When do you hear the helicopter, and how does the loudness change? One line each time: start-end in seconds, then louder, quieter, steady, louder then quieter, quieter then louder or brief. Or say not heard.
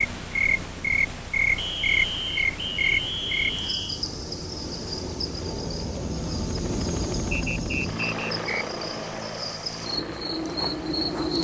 0.0-11.3 louder then quieter.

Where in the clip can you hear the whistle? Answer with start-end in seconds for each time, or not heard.
1.6-4.0, 7.3-8.7.